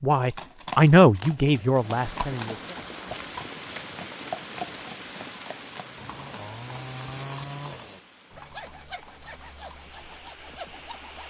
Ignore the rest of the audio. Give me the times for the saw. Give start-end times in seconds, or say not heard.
5.8-11.2.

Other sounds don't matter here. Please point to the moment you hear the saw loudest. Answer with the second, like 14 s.
7 s.